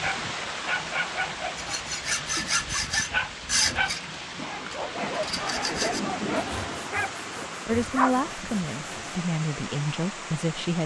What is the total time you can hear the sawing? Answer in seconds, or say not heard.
8 s.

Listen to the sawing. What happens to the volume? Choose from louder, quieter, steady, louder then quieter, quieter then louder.
quieter.